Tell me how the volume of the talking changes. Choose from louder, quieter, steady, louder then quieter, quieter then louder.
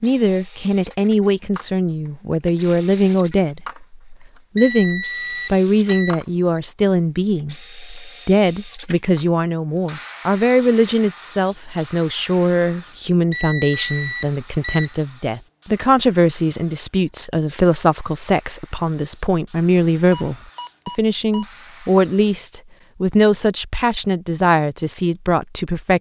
steady.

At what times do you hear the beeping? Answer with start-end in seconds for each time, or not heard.
4.5-6.6, 13.3-14.9, 20.1-21.4.